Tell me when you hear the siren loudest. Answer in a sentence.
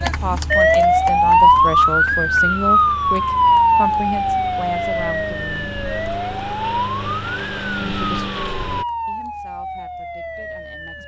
The volume of the siren peaks at 1 second.